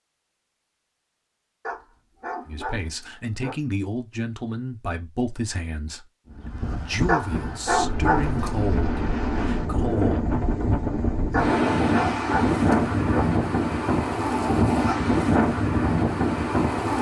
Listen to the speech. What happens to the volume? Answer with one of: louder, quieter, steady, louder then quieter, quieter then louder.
steady.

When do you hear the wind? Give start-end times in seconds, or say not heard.
6.3-16.9.